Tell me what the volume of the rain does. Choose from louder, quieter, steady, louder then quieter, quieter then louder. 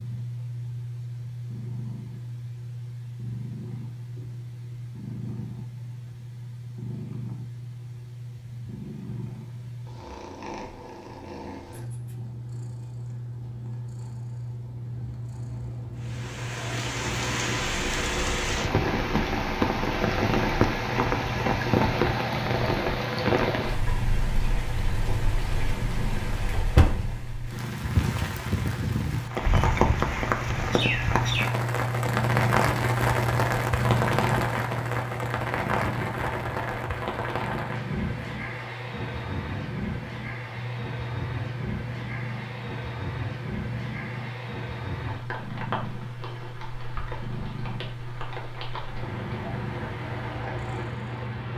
quieter.